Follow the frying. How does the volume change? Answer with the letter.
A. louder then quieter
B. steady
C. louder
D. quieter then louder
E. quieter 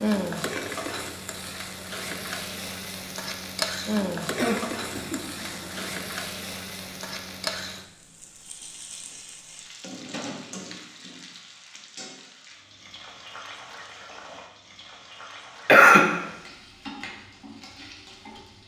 E.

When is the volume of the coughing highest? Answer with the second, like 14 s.
16 s.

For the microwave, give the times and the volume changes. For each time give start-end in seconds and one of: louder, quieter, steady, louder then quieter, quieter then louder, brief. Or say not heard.
not heard.